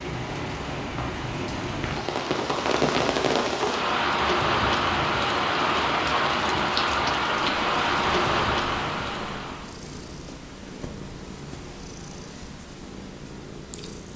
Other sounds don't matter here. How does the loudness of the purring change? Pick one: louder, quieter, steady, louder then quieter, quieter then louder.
steady.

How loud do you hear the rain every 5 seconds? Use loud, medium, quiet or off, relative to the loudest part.
loud, loud, off.